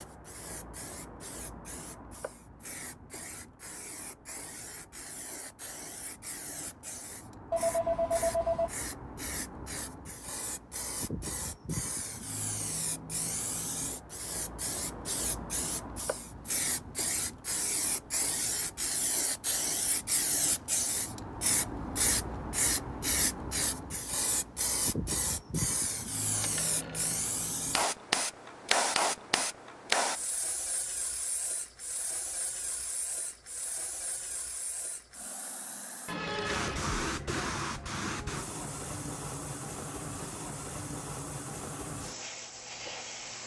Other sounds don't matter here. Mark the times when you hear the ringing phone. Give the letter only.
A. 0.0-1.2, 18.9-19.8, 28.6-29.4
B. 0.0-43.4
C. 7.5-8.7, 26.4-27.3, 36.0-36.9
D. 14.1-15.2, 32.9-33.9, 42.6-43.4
C.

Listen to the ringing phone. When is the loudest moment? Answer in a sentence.
The volume of the ringing phone peaks at 8 seconds.